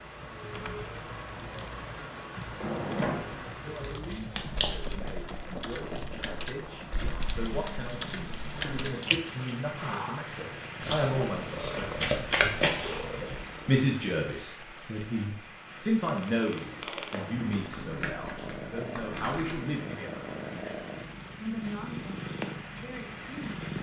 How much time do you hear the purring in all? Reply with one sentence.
The purring can be heard for 14 seconds in total.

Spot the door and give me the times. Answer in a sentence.
The door can be heard from 2.6 to 3.5 s.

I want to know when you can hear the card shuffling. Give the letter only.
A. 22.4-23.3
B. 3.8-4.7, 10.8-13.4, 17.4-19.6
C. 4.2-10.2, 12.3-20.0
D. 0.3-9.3
B.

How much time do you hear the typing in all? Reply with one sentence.
The typing can be heard for 9 seconds in total.